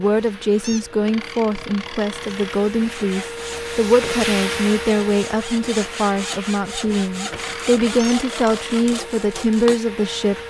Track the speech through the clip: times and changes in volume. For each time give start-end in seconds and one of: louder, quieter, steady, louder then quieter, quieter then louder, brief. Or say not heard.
0.0-10.3 steady.